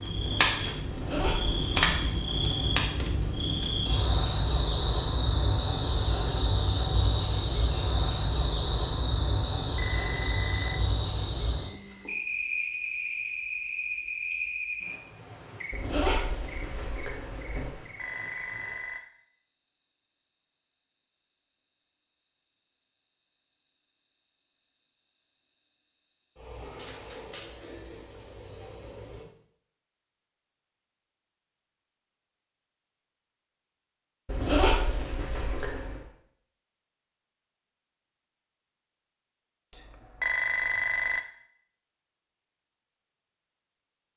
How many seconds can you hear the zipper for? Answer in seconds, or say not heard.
5 s.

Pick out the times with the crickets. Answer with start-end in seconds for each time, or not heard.
0.0-29.2.